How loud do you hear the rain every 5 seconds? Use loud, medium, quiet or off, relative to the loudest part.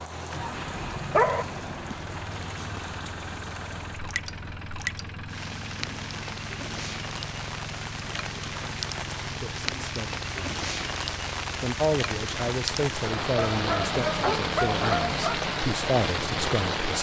medium, medium, loud, loud.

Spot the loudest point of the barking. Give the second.
1 s.